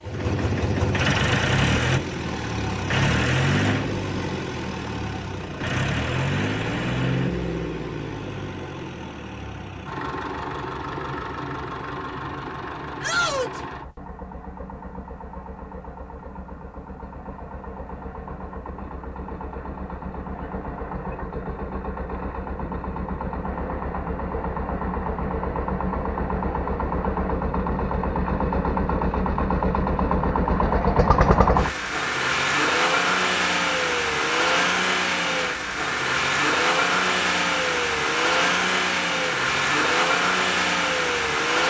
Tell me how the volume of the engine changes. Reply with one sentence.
The loudness of the engine goes down, then up.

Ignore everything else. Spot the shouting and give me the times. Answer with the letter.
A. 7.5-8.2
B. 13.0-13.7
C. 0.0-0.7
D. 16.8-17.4
B.